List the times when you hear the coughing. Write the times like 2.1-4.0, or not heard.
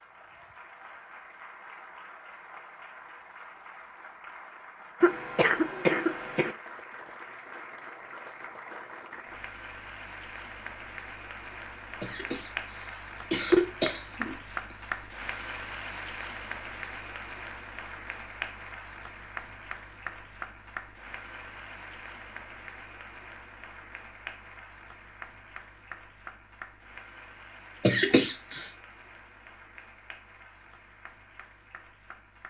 5.0-6.5, 12.0-12.4, 13.3-14.3, 27.9-28.6.